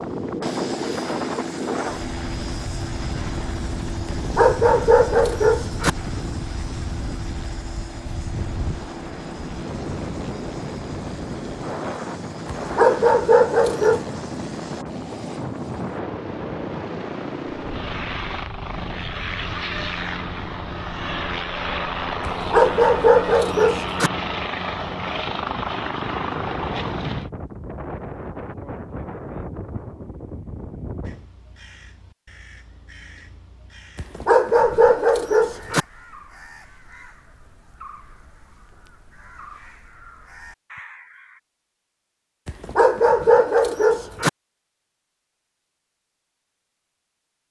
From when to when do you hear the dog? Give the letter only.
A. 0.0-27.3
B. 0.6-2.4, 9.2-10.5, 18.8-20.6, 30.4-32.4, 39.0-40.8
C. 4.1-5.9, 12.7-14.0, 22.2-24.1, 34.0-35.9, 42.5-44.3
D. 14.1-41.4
C.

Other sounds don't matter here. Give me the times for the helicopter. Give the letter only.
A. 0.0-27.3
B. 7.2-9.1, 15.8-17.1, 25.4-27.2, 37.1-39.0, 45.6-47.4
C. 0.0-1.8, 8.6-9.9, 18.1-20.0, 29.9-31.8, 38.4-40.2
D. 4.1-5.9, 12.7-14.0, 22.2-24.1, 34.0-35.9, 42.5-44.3
A.